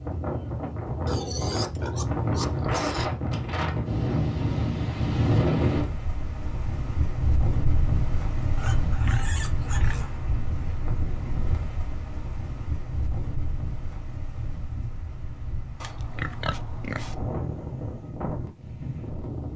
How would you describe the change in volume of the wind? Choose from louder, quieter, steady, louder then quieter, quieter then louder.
quieter.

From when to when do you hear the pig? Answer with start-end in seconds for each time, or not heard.
1.1-3.1, 8.6-10.2, 15.8-17.1.